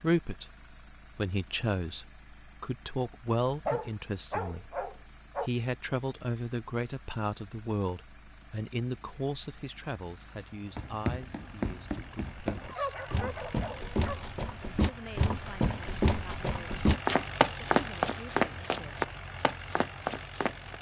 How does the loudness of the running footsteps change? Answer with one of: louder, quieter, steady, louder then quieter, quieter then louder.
louder then quieter.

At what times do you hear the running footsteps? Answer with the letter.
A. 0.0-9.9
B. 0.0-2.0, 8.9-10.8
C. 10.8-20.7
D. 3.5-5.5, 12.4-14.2
C.